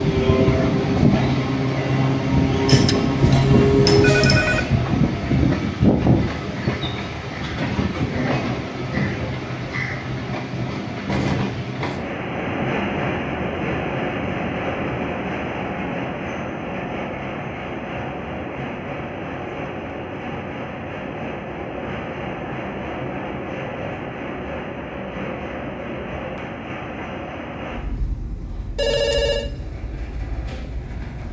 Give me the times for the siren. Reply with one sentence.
The siren can't be heard in this clip.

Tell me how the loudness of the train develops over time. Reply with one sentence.
The loudness of the train goes down.